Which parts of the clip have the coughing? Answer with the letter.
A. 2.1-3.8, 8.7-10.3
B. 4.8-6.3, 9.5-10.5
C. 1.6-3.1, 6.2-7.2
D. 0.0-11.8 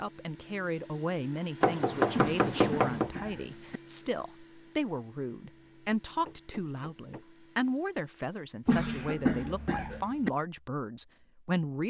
A.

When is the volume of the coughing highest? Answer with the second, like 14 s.
9 s.